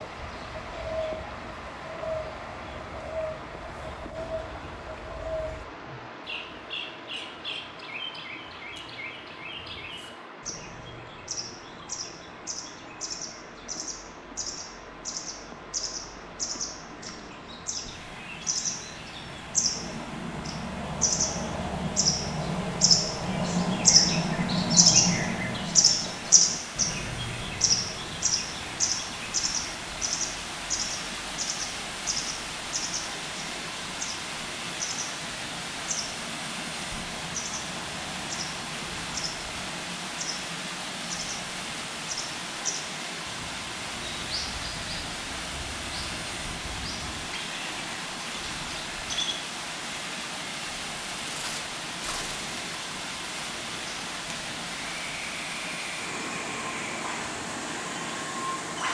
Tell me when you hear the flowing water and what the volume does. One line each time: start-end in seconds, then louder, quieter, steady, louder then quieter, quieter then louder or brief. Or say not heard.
0.0-58.8 louder.